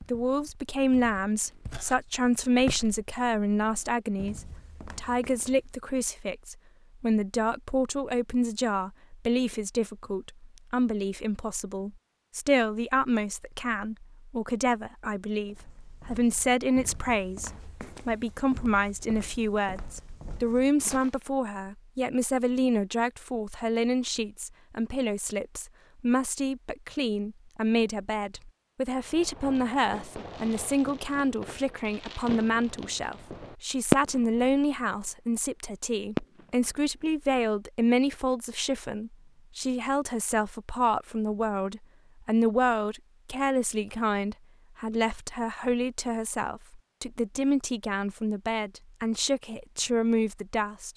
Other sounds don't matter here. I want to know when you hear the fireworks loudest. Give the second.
34 s.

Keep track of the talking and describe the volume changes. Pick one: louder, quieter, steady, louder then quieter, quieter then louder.
steady.